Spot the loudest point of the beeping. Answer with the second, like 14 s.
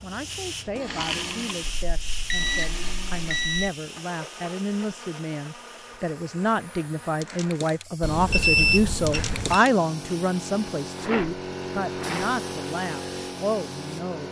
9 s.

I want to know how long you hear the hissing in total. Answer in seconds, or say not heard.
14 s.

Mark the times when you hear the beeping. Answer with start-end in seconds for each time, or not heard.
1.8-3.7, 8.0-9.6.